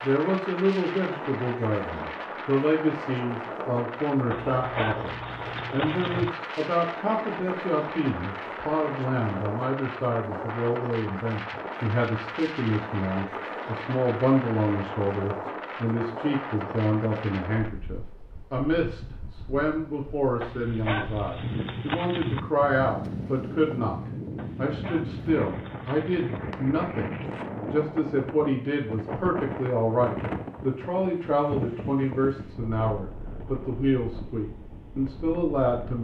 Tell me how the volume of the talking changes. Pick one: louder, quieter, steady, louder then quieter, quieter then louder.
steady.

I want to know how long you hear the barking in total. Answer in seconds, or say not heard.
6 s.